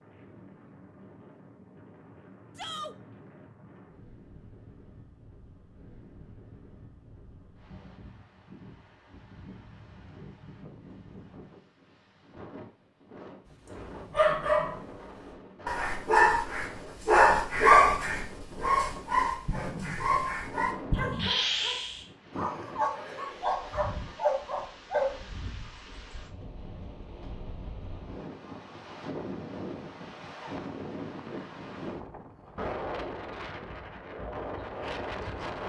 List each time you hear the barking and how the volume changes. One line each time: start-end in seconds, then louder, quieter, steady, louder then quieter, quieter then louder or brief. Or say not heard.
13.7-14.9 brief
15.7-25.1 quieter.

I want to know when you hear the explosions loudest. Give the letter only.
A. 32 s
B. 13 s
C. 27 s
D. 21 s
D.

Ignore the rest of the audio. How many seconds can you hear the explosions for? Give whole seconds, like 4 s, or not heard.
2 s.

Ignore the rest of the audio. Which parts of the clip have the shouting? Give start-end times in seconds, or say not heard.
2.5-3.0.